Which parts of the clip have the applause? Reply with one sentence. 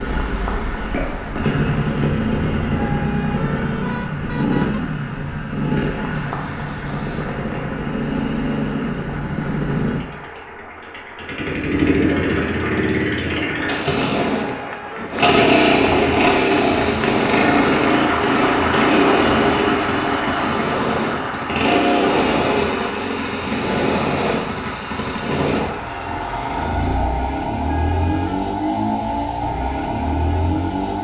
The applause can be heard from 0.0 to 26.7 s.